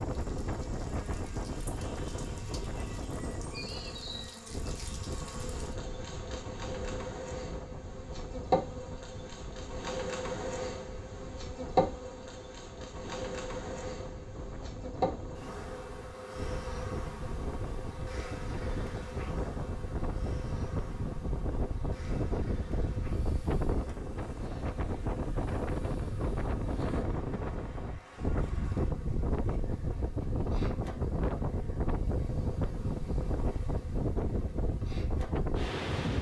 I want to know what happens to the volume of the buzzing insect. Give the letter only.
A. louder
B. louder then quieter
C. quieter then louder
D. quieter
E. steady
B.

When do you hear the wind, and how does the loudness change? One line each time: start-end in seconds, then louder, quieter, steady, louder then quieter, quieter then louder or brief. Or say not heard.
0.0-36.1 quieter then louder.